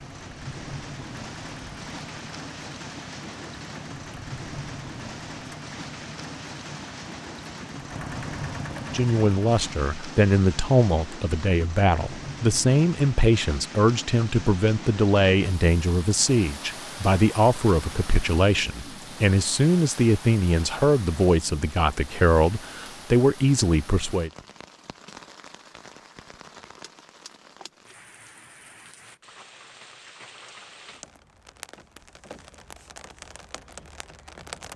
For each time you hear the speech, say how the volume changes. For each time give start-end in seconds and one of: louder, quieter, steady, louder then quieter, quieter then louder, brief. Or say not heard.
8.9-24.3 steady.